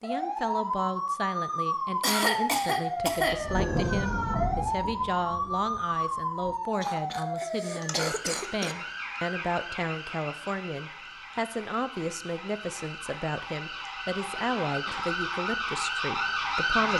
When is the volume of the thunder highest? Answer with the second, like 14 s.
4 s.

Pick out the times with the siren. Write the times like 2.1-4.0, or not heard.
0.0-16.9.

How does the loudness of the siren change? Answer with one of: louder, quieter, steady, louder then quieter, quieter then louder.
quieter then louder.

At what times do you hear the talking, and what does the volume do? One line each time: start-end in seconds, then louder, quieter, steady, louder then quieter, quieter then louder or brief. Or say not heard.
0.0-16.9 steady.